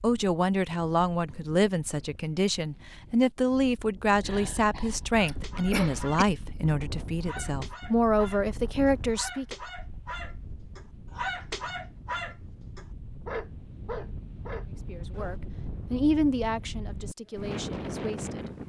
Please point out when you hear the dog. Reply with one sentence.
The dog can be heard from 5.2 to 15.4 s.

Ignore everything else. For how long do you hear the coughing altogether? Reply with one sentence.
The coughing can be heard for 2 seconds in total.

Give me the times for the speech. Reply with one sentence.
The speech can be heard from 0.0 to 9.6 s and from 14.8 to 18.5 s.